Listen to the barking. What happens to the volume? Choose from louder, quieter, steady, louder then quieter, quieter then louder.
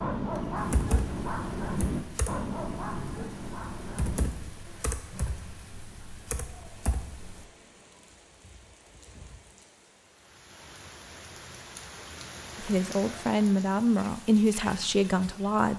quieter.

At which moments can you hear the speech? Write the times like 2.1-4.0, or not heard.
12.6-15.7.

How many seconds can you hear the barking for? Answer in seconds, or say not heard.
6 s.